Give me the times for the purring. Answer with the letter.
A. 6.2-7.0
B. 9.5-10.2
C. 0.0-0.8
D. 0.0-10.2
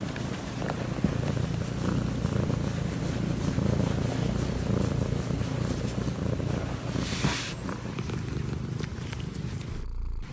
D.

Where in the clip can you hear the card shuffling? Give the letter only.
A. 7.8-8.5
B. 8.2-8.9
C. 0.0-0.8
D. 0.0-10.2
C.